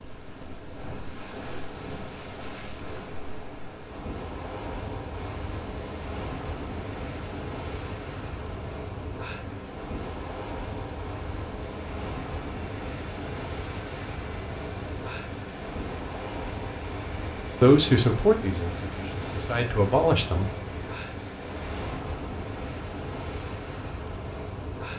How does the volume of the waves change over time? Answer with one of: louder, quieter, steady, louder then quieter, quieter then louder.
steady.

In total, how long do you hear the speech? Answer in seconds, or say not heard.
3 s.